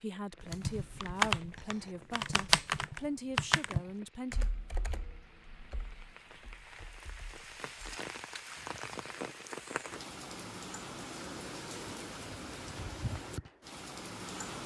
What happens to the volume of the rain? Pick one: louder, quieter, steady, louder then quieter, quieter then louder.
louder.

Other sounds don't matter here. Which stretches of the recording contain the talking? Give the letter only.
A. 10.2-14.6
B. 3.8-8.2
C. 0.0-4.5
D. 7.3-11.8
C.